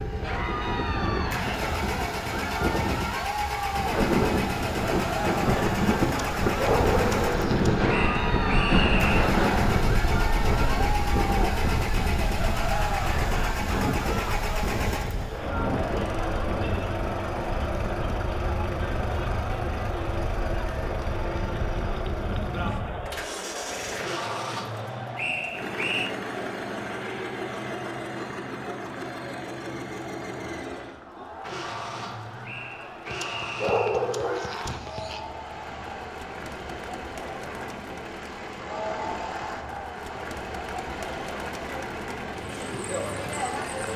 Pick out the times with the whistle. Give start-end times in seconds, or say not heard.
7.8-9.2, 25.1-26.1, 32.5-34.1.